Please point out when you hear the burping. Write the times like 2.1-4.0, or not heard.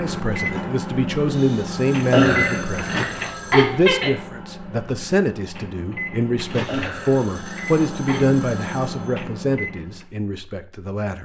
2.1-4.1, 6.7-8.3.